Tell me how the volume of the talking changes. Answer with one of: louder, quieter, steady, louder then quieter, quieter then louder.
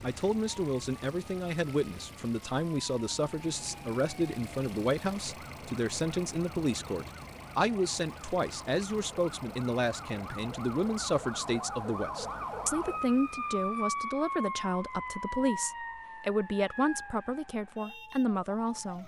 steady.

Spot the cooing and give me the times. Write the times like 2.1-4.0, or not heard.
not heard.